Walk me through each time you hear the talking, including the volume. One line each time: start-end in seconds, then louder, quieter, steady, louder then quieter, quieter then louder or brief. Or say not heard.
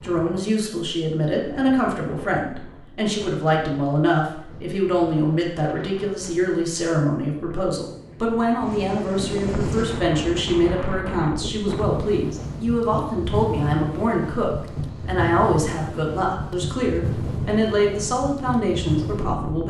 0.0-19.6 steady.